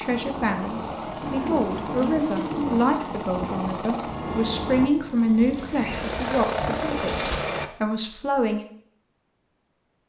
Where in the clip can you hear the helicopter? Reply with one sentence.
The helicopter can be heard from 0.0 to 7.7 s.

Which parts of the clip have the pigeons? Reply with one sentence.
You can hear the pigeons from 1.2 to 2.9 s and from 5.4 to 7.3 s.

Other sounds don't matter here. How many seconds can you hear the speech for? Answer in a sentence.
You can hear the speech for 9 seconds altogether.